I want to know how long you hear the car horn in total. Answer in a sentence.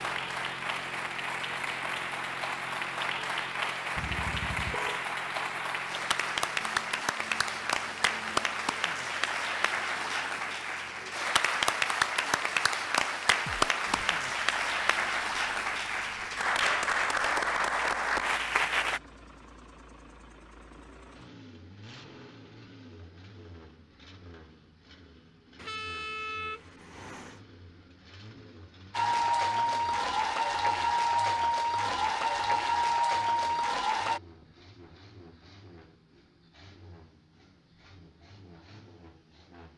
The car horn can be heard for 3 seconds in total.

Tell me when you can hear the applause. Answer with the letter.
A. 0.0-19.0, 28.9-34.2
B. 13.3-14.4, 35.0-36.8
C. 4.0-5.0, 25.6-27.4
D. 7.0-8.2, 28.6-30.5
A.